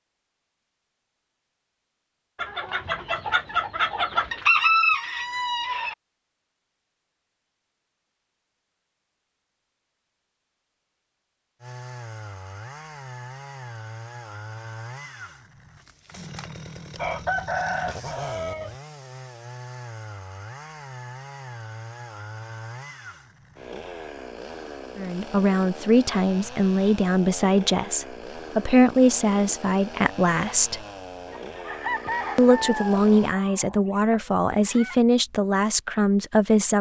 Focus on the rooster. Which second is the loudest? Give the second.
5 s.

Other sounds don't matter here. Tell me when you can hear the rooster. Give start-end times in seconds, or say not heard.
2.4-6.0, 16.9-18.8, 31.3-35.0.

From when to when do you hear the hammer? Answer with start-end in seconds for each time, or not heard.
not heard.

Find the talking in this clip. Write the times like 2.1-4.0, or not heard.
24.9-30.8, 32.4-36.7.